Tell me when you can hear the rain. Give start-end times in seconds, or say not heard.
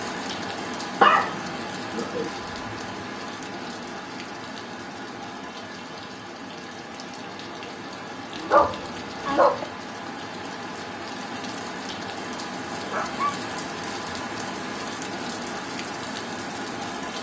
0.0-17.1.